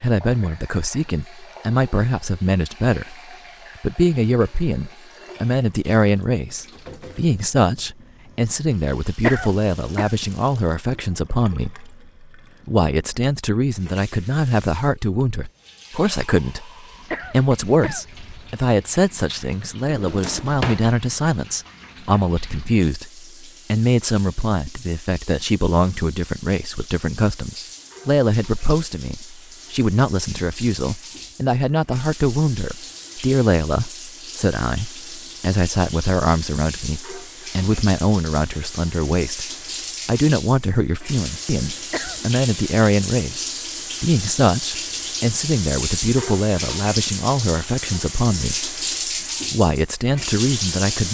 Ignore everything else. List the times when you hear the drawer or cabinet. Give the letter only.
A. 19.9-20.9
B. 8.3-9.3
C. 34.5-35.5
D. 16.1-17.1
A.